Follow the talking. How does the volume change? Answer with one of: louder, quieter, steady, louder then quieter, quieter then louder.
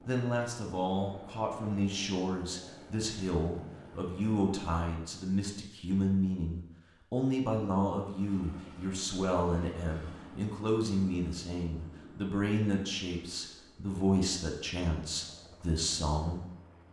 steady.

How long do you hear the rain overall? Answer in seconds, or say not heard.
not heard.